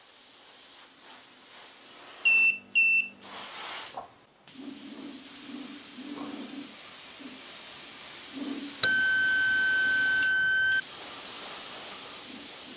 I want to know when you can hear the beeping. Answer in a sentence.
You can hear the beeping from 2.2 to 3.1 s and from 8.8 to 10.8 s.